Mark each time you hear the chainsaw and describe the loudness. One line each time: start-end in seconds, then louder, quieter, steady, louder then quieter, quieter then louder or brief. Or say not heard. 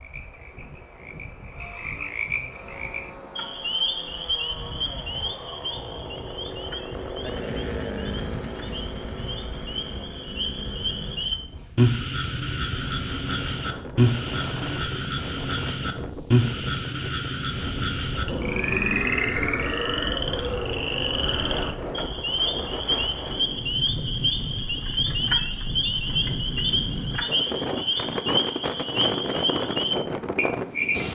2.5-11.9 louder then quieter.